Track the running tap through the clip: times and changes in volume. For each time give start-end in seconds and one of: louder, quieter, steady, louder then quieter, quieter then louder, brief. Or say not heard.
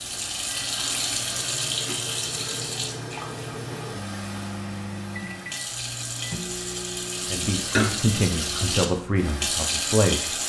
0.0-10.4 quieter then louder.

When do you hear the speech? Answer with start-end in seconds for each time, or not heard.
7.3-10.4.